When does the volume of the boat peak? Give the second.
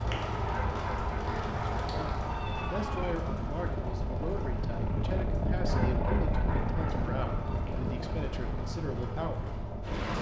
6 s.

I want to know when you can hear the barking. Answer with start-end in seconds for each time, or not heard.
0.5-3.1, 5.7-7.6.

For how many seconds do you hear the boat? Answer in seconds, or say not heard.
10 s.